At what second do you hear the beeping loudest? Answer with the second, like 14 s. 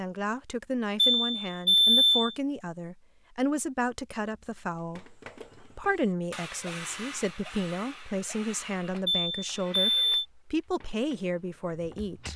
2 s.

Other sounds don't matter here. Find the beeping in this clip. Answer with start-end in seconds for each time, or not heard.
0.9-2.4, 9.1-10.2.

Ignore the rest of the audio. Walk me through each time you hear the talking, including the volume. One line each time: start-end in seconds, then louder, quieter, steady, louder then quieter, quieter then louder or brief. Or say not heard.
0.0-12.3 steady.